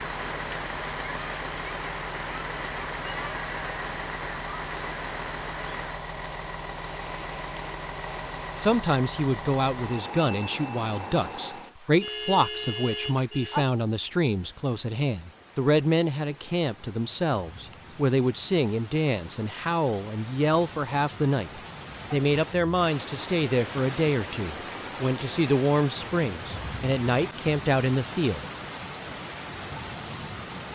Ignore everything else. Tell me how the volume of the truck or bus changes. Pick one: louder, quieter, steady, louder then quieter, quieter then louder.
steady.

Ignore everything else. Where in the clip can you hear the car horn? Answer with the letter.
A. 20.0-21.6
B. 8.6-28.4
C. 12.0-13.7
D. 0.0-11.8
C.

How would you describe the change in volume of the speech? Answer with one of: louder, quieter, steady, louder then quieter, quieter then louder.
steady.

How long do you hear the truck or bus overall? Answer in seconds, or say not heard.
12 s.